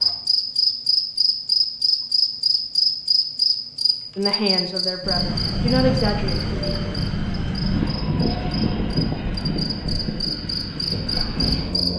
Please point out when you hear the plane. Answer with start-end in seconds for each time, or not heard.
5.0-11.9.